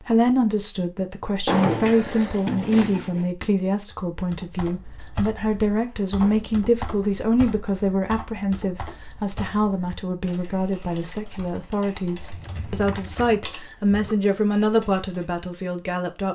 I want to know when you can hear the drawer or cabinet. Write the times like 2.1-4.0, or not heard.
1.4-3.3, 5.8-7.2, 12.2-14.2.